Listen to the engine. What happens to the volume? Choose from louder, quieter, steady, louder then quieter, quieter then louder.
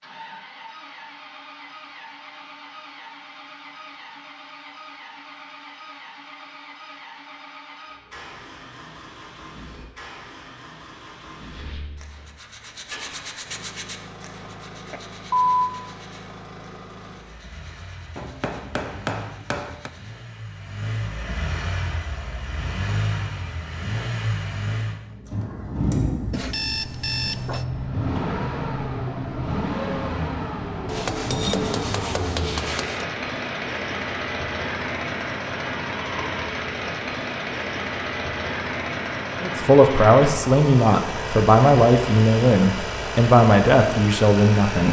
louder.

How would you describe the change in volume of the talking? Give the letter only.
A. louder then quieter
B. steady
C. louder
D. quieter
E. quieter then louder
B.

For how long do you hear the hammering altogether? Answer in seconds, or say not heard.
4 s.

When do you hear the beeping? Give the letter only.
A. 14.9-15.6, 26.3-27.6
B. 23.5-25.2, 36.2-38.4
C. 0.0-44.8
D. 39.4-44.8
A.